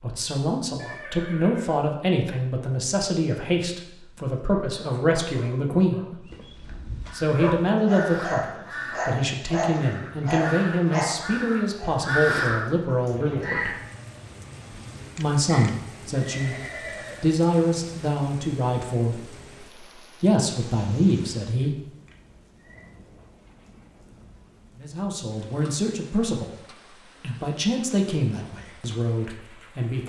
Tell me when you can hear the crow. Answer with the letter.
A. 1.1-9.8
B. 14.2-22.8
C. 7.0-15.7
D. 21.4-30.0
C.